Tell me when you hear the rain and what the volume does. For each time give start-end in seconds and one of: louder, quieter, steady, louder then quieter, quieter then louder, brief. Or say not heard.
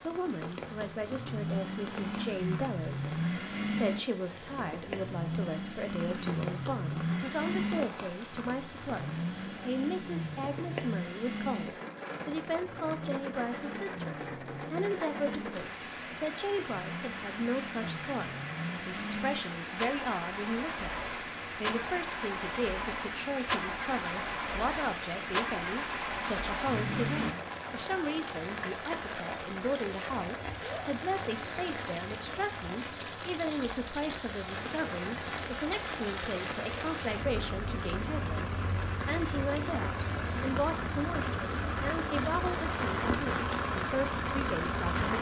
0.0-45.1 louder.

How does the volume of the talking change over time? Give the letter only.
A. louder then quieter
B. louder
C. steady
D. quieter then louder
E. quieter
C.